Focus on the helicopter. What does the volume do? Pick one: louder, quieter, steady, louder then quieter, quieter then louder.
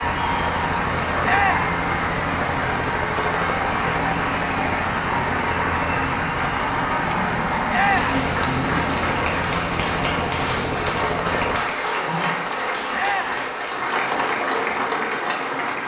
steady.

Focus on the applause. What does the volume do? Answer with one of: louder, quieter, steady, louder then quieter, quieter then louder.
steady.